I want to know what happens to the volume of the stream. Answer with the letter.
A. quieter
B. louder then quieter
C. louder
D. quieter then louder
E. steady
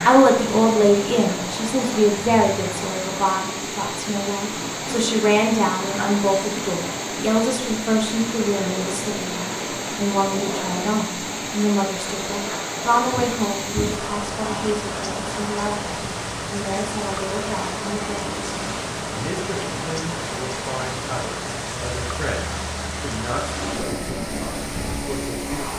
E.